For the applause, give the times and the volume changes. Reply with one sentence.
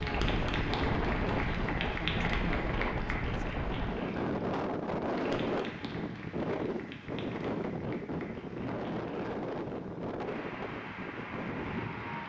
The applause can be heard from 0.0 to 12.2 s, getting quieter then louder.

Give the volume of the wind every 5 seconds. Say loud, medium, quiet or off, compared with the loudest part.
loud, loud, medium.